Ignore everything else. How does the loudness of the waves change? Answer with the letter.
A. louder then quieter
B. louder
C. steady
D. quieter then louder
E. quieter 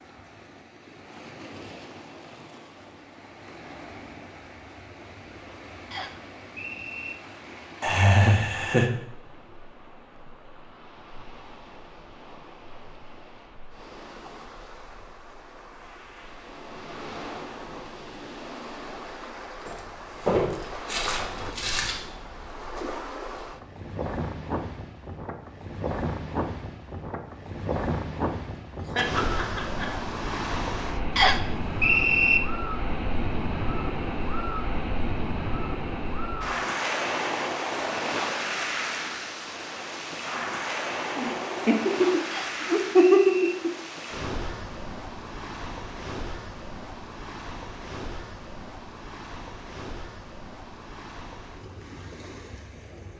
A.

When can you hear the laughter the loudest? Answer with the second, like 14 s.
43 s.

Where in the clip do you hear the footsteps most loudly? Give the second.
20 s.